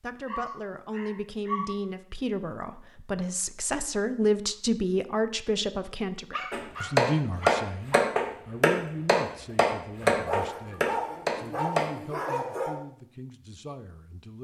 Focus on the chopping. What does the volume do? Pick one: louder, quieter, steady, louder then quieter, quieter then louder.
quieter.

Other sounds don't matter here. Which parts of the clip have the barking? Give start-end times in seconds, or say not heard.
0.2-1.8, 6.3-8.0, 10.0-12.8.